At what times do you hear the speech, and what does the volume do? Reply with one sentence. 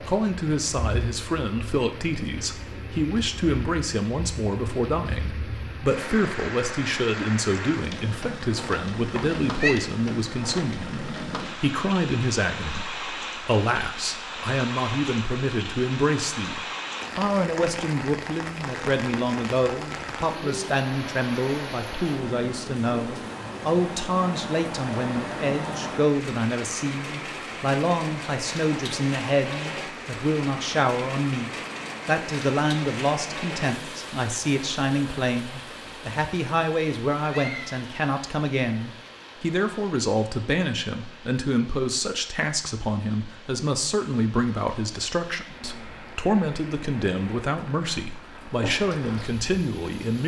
You can hear the speech from 0.0 to 50.2 s, at a steady volume.